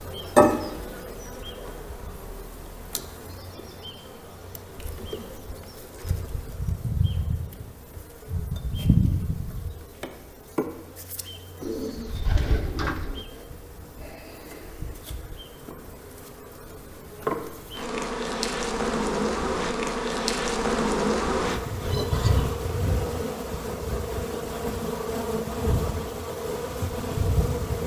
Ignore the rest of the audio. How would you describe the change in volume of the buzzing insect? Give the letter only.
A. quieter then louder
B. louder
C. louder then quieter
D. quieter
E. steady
A.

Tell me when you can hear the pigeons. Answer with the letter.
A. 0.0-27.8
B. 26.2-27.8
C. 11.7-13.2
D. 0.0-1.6
C.